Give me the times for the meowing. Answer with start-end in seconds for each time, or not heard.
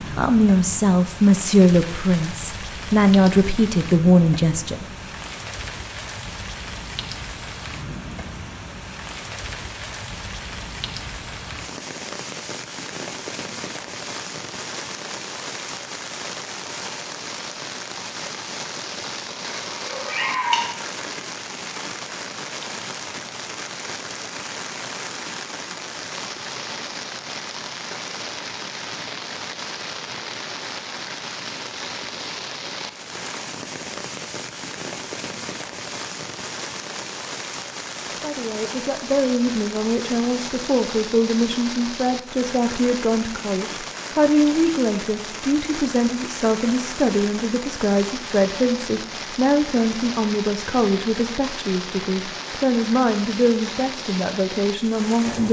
19.4-20.7.